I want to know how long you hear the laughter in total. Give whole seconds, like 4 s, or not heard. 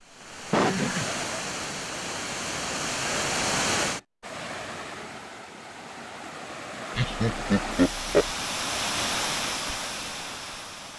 2 s.